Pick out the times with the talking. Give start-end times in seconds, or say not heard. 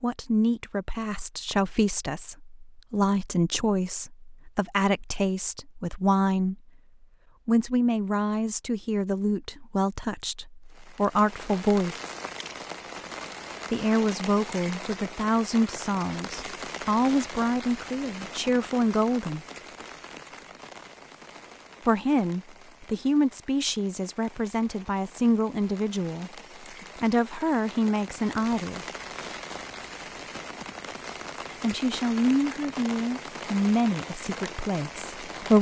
0.0-6.6, 7.5-12.0, 13.7-19.4, 21.9-26.3, 27.0-28.9, 31.5-35.5.